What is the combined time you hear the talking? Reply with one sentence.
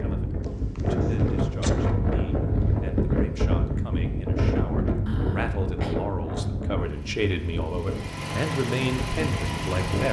You can hear the talking for 10 seconds altogether.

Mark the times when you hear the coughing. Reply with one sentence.
You can hear the coughing from 0.4 to 1.7 s and from 5.0 to 6.2 s.